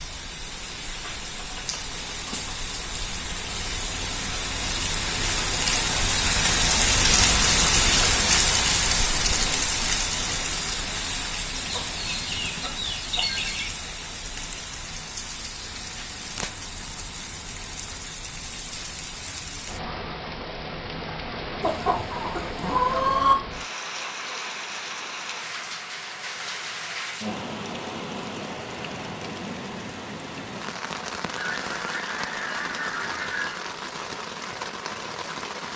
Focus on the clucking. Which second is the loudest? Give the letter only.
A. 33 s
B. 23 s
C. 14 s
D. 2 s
B.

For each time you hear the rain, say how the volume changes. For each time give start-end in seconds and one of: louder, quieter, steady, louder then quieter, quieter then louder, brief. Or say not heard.
0.0-35.7 quieter.